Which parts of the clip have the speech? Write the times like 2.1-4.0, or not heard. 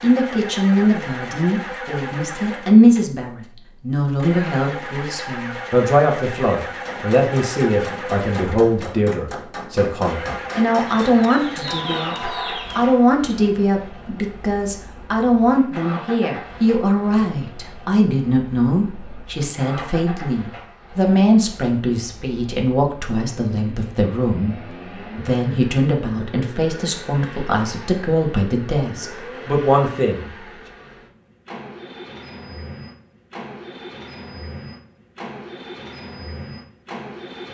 0.0-30.3.